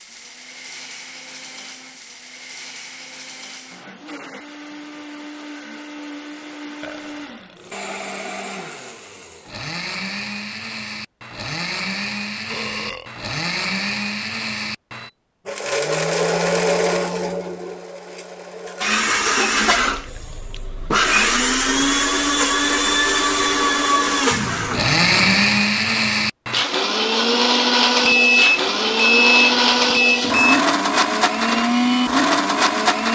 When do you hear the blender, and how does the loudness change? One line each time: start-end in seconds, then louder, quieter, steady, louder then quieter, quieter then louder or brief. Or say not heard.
0.0-33.1 louder.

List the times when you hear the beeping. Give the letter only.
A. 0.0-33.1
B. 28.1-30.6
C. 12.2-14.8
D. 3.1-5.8
B.